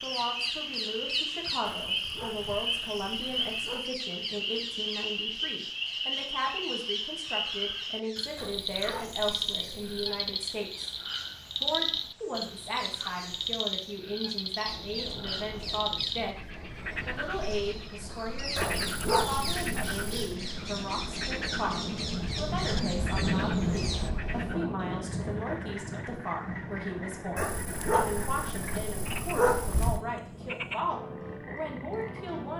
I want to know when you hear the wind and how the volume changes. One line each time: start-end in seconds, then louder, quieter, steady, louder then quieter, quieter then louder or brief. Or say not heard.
14.7-32.5 louder then quieter.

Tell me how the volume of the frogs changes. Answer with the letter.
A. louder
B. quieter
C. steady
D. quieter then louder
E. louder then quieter
B.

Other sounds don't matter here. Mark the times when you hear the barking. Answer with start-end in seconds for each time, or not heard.
1.8-3.9, 8.3-10.1, 18.6-20.4, 27.4-30.0.